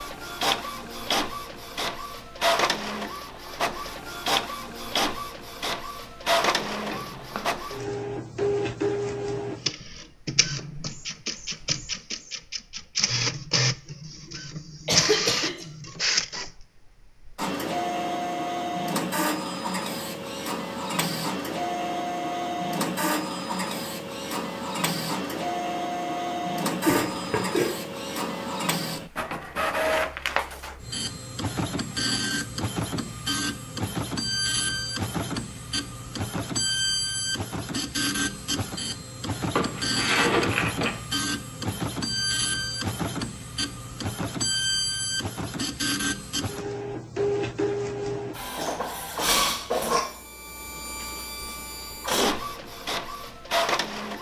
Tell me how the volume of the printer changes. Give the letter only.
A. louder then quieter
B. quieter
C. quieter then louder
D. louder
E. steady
E.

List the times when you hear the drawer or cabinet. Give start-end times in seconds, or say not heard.
6.4-7.5, 39.5-41.0.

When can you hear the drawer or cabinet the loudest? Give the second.
40 s.